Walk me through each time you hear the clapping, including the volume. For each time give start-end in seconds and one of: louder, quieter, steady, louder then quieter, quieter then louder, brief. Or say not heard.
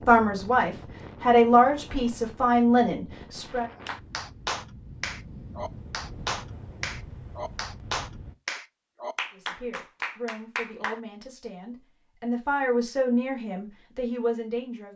3.9-11.0 steady.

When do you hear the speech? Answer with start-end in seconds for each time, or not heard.
0.0-3.6, 9.3-14.9.